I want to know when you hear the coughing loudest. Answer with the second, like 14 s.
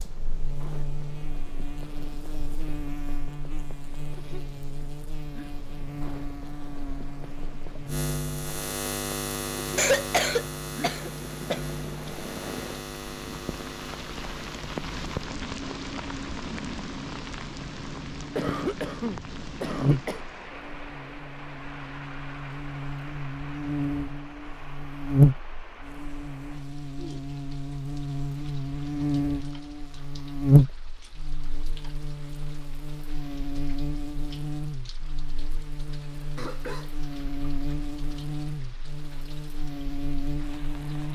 10 s.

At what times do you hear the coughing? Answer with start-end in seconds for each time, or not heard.
9.8-11.6, 18.4-20.2, 36.4-37.3.